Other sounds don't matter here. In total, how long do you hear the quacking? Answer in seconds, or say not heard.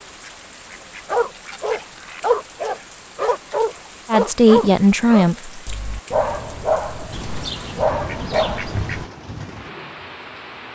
4 s.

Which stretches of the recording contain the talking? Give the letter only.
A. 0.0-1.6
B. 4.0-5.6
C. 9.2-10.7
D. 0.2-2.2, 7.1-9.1
B.